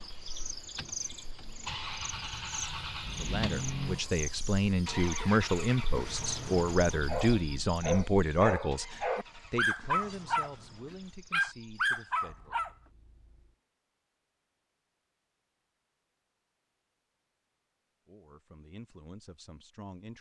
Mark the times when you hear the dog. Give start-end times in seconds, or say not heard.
7.0-10.5, 11.3-12.7.